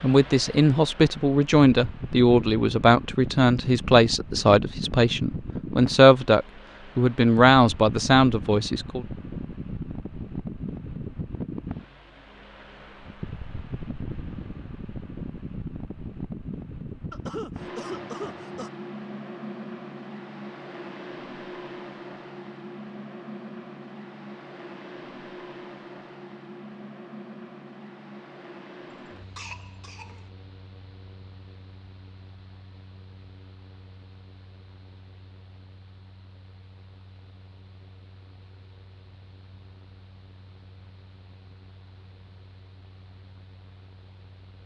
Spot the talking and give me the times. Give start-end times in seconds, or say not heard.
0.0-9.1.